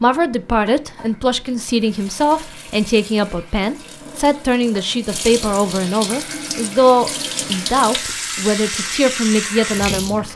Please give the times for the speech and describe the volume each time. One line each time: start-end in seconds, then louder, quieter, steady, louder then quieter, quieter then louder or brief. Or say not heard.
0.0-10.3 steady.